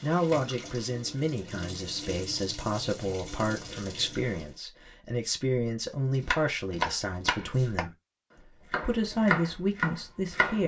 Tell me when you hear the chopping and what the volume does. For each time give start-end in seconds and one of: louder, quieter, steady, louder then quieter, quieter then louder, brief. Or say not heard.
6.2-10.6 quieter then louder.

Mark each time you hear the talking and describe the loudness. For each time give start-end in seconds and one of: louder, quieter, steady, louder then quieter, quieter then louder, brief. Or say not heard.
0.0-7.9 steady
8.7-10.6 brief.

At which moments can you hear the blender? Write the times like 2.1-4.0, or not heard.
not heard.